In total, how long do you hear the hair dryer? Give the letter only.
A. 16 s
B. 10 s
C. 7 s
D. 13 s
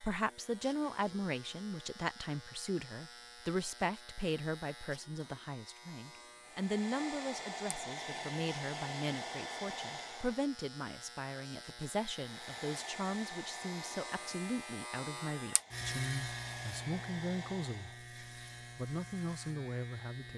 B.